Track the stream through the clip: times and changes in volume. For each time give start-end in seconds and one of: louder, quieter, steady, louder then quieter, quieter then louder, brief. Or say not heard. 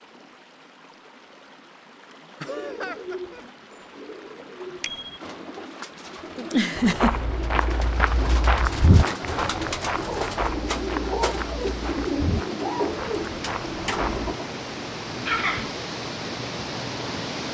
0.0-17.4 louder.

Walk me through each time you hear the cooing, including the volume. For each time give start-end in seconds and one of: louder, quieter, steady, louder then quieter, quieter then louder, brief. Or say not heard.
2.4-14.5 louder.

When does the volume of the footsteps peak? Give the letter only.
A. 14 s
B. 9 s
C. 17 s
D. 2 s
B.